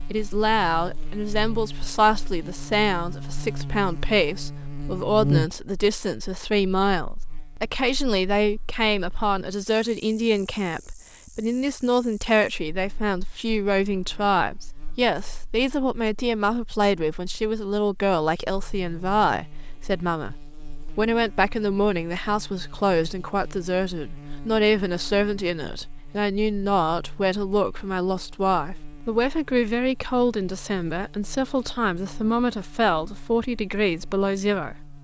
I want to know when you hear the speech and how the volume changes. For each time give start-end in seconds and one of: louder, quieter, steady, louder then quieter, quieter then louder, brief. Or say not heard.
0.1-34.9 steady.